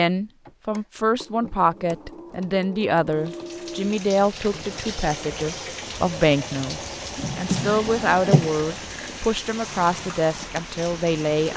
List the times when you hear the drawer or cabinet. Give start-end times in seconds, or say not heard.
7.2-8.5.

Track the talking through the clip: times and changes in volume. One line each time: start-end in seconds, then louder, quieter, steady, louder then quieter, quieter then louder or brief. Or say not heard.
0.0-11.5 steady.